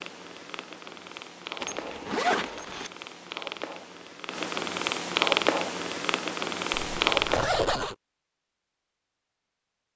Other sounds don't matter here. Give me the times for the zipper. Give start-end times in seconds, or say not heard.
1.6-2.9, 6.7-8.0.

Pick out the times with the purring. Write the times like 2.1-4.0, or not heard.
0.0-7.6.